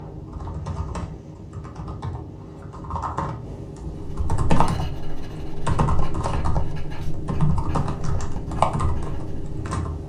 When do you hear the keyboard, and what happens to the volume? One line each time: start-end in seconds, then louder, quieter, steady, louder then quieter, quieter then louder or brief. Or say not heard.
0.0-10.0 louder.